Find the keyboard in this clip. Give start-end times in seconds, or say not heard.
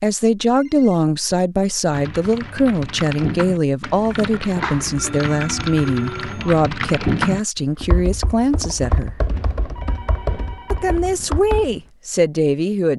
1.9-11.8.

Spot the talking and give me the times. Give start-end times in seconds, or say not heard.
0.0-9.2, 10.7-12.9.